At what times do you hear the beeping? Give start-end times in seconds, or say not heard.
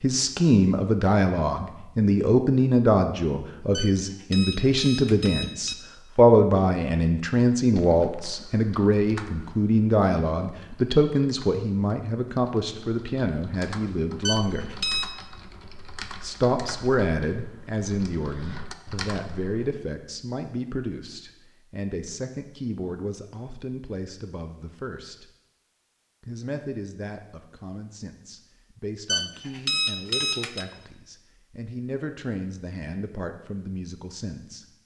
3.7-5.8, 14.2-15.1, 29.1-30.6.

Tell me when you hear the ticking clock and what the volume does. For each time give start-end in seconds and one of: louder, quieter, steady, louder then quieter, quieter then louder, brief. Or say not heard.
not heard.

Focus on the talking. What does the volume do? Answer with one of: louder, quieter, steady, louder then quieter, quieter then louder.
quieter.